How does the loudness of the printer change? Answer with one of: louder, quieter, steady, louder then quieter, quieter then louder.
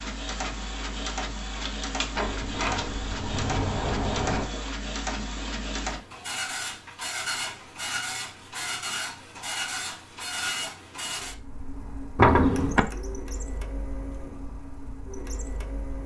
quieter.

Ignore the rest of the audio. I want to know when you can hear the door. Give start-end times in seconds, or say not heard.
2.1-4.5, 12.2-12.8.